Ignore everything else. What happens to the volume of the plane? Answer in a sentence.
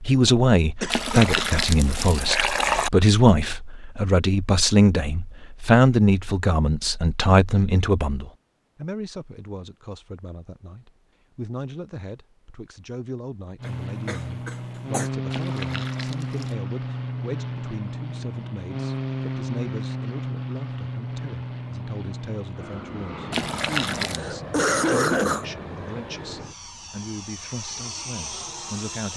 The loudness of the plane goes down.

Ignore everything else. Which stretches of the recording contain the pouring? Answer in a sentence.
You can hear the pouring from 0.9 to 2.9 s, from 15.3 to 16.6 s and from 23.3 to 24.2 s.